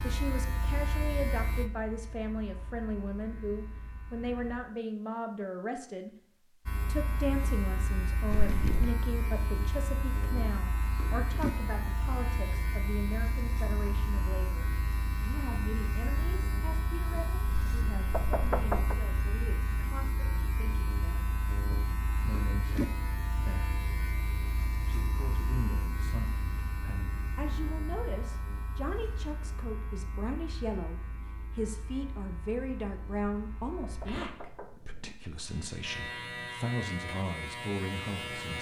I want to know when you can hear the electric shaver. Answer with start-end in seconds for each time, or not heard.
0.0-4.6, 6.7-38.5.